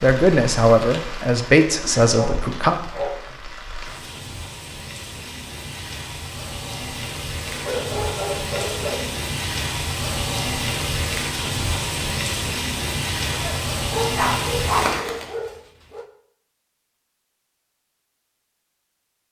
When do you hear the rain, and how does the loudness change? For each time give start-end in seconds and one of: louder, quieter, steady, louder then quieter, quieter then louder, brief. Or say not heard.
0.0-15.3 louder.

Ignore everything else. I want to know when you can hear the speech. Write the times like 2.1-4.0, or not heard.
0.0-2.8.